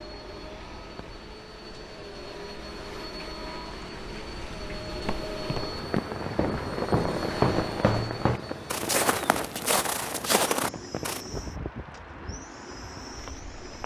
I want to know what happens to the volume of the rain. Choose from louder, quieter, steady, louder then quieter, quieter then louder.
louder then quieter.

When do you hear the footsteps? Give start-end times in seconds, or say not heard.
5.0-11.2.